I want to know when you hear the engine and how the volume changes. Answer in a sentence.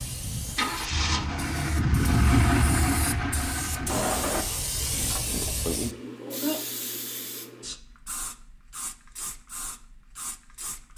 The engine can be heard from 0.0 to 4.5 s, getting louder then quieter.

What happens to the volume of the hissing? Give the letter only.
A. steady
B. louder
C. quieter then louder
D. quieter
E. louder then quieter
E.